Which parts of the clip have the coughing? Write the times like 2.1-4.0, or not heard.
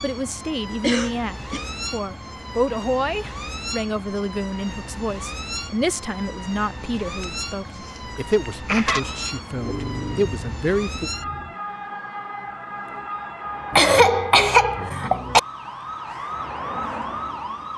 0.8-1.7, 7.2-9.0, 13.7-15.4.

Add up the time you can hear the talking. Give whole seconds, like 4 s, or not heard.
11 s.